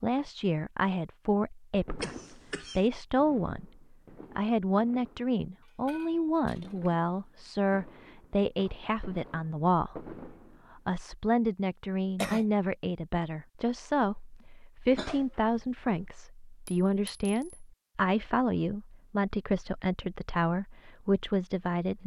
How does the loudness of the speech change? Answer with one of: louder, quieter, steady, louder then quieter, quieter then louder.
steady.